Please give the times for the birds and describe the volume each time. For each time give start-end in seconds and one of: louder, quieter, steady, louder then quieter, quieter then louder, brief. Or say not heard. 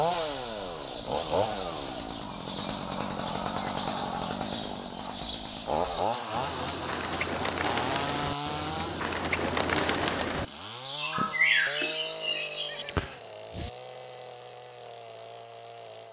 0.0-12.8 louder.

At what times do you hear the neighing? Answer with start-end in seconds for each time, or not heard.
12.7-13.7.